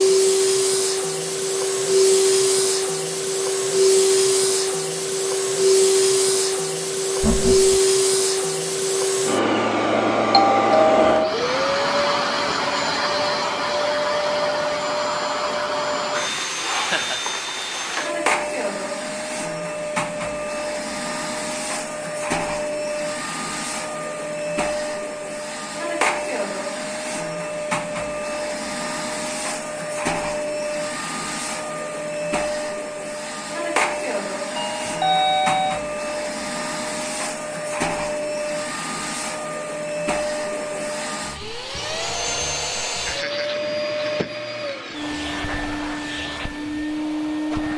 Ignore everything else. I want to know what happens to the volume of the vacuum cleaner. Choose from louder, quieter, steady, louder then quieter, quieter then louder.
quieter.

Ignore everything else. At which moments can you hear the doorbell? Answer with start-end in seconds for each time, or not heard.
10.3-11.3, 34.5-35.8.